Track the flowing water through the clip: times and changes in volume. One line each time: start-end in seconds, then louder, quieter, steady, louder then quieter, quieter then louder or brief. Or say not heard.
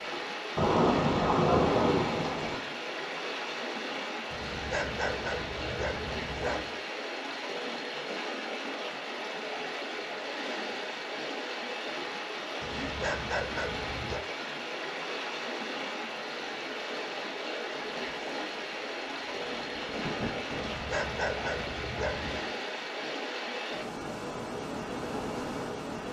0.0-26.0 steady.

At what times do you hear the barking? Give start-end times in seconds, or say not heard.
4.3-6.8, 12.6-14.2, 20.5-22.5.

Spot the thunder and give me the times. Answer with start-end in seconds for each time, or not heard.
0.6-2.6, 17.9-20.8.